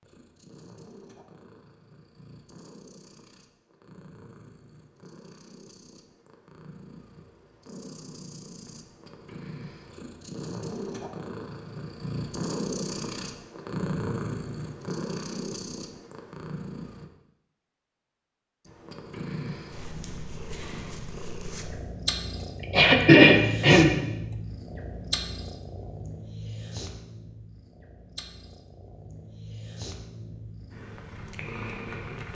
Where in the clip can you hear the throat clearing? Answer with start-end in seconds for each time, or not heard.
22.4-24.4.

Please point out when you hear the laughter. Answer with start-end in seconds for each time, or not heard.
not heard.